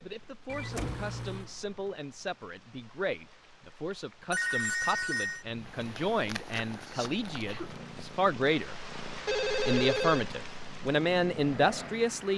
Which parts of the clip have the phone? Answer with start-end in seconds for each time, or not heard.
0.5-1.5, 4.3-5.5, 9.2-10.2.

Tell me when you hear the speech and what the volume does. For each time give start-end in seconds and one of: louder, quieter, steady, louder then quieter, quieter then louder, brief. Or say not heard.
0.0-8.8 louder
9.6-12.3 brief.